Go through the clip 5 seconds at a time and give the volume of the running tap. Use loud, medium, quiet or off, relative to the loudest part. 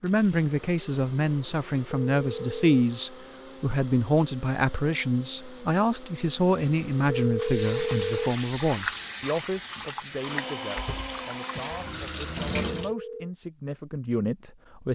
off, loud, loud.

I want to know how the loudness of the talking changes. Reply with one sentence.
The loudness of the talking goes down.